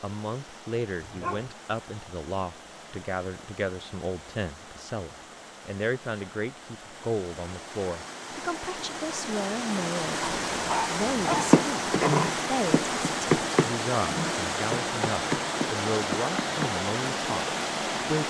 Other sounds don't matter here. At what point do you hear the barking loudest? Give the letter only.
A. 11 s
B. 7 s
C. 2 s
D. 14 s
A.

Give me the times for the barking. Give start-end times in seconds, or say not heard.
1.0-1.6, 10.4-11.6.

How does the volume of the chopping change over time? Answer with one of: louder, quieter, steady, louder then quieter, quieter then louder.
quieter.